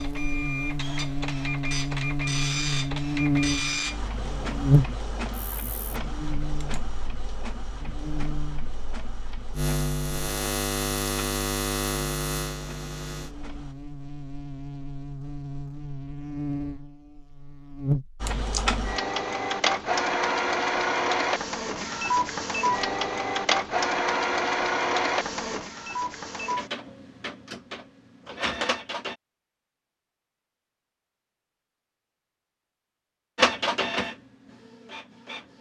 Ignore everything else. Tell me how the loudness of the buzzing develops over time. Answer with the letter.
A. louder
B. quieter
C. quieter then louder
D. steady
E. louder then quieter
B.